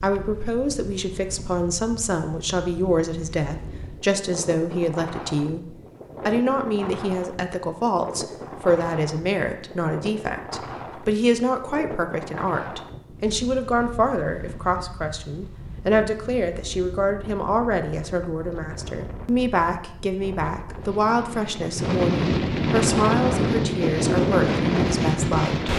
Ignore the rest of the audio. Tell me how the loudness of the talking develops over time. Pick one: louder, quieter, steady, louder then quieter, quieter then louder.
steady.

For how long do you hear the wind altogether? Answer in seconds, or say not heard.
26 s.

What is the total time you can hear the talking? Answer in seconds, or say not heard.
26 s.